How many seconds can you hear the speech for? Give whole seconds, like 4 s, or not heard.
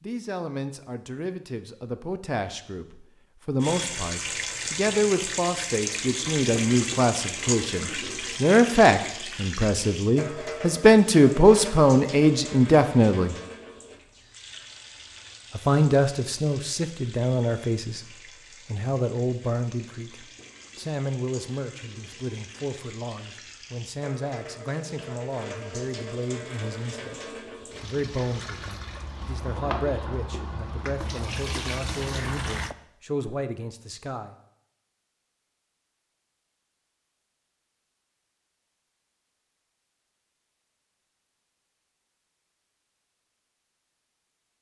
31 s.